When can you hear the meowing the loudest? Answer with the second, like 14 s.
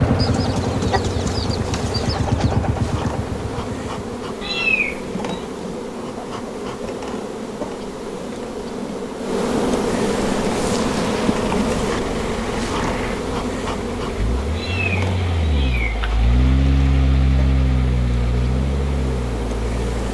5 s.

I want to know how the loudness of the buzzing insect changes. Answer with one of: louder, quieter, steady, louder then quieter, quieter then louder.
louder then quieter.